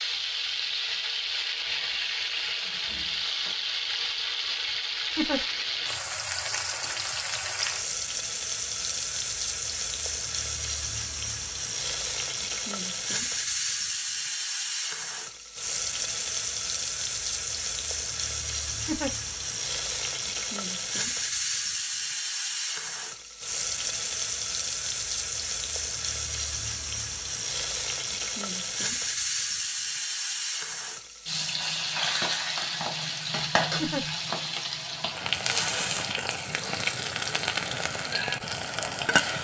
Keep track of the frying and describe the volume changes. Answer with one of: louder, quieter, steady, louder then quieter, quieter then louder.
steady.